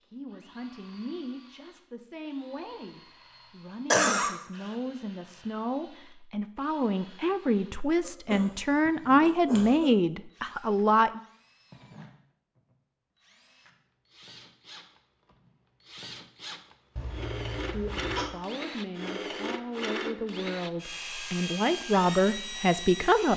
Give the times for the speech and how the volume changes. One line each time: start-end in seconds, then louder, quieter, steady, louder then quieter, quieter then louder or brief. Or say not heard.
0.1-11.2 louder
17.7-23.3 louder.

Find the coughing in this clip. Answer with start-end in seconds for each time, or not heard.
3.9-4.8, 8.0-9.9, 16.9-18.3.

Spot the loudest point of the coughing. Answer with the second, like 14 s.
4 s.